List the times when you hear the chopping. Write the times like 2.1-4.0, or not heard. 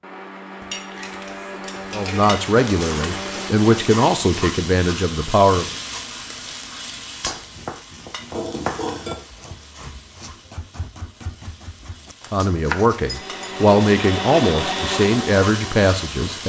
7.2-13.2.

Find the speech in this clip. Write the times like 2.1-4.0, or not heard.
1.9-5.7, 12.3-16.4.